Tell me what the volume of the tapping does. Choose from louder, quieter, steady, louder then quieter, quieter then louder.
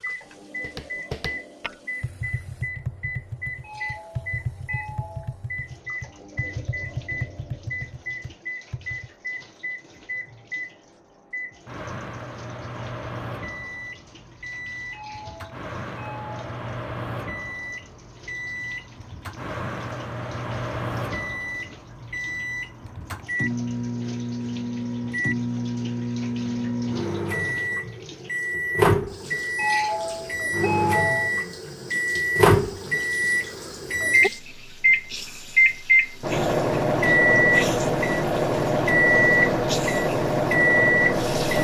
steady.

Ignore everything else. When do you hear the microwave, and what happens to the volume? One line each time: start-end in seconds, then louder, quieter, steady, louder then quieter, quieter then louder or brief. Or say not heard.
0.0-41.5 louder.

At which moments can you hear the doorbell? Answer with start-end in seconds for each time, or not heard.
3.6-5.3, 14.9-16.4, 29.6-31.3.